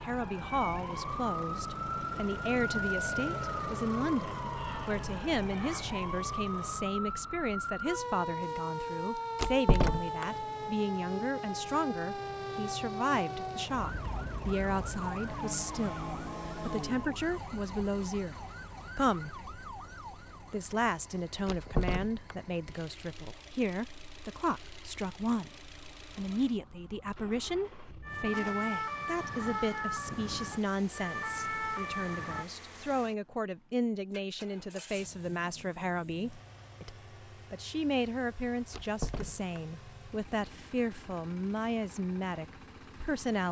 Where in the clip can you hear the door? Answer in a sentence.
You can hear the door from 9.3 to 10.2 s, from 21.4 to 22.4 s and from 38.7 to 39.6 s.